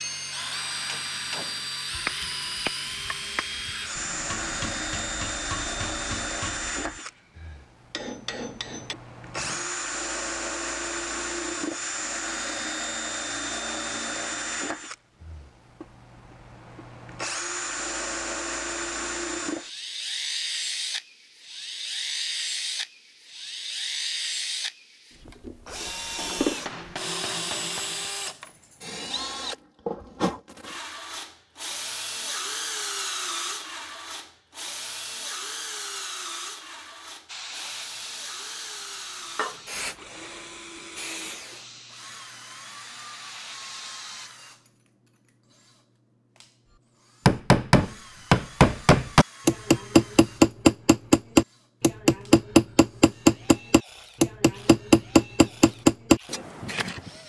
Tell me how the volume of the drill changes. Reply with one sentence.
The loudness of the drill goes down.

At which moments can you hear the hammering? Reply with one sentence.
You can hear the hammering from 0.0 to 9.7 s, from 26.1 to 28.1 s and from 47.2 to 57.1 s.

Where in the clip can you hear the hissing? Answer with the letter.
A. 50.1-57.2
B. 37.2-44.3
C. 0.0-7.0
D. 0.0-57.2
B.